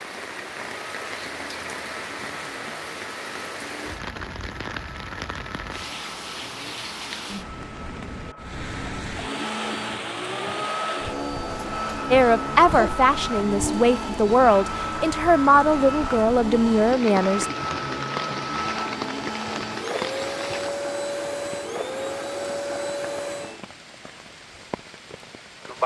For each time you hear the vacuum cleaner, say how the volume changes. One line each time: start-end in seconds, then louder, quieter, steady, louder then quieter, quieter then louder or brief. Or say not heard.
0.0-23.6 louder.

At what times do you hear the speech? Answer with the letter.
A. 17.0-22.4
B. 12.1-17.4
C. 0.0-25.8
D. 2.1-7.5
B.